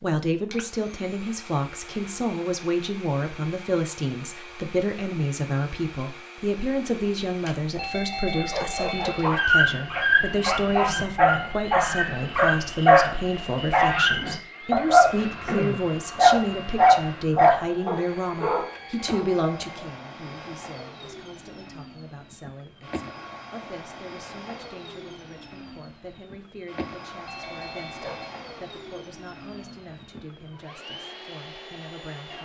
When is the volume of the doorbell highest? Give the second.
9 s.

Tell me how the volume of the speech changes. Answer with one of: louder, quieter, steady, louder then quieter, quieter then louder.
quieter.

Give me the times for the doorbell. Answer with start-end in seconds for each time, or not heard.
7.8-9.3, 18.7-19.9, 27.2-28.3.